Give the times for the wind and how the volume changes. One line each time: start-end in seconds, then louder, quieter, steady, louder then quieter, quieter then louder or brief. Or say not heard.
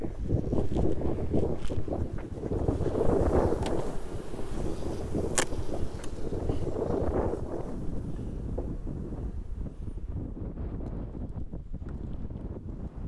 0.0-13.0 quieter.